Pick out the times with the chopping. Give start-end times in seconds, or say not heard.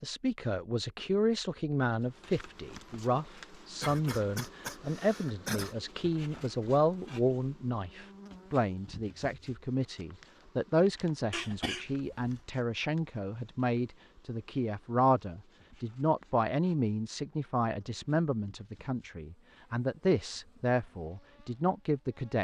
not heard.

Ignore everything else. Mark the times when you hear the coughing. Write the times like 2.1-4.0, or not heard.
3.8-5.8, 11.3-12.4.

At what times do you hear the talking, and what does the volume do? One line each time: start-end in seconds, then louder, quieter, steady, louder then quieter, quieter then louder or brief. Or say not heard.
0.0-22.4 steady.